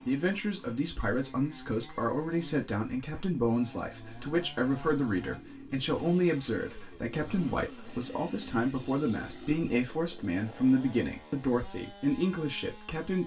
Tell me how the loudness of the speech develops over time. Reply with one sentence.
The volume of the speech stays about the same.